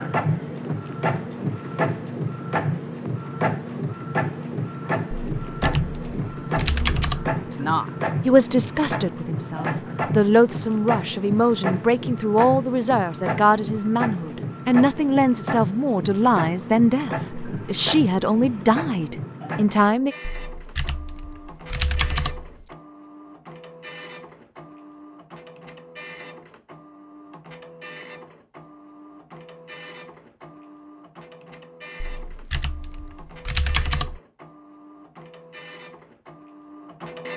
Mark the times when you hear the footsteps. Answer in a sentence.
You can't hear the footsteps here.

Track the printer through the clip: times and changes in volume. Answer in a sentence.
You can hear the printer from 0.0 to 37.3 s, getting quieter.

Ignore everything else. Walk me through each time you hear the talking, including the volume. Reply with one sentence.
The talking can be heard from 7.5 to 20.1 s, at a steady volume.